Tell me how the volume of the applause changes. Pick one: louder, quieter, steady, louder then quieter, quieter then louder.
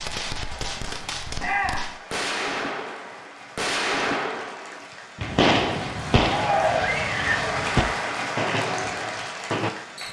louder.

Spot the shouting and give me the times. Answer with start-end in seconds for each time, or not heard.
1.4-1.9, 6.2-7.2.